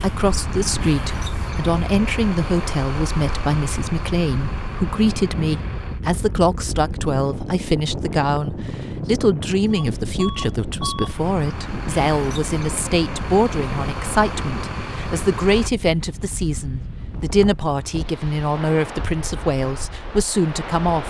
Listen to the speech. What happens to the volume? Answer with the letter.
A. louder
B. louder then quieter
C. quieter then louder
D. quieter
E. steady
E.